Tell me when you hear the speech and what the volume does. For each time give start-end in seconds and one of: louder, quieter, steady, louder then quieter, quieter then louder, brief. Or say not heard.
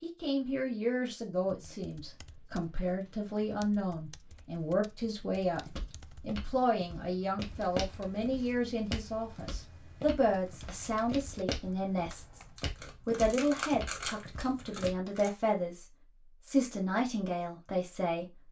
0.0-12.4 steady
13.1-15.8 brief
16.4-18.4 brief.